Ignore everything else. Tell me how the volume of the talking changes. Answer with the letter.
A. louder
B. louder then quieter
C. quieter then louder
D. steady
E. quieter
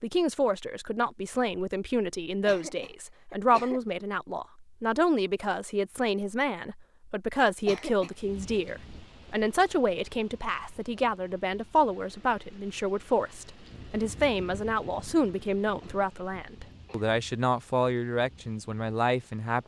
D.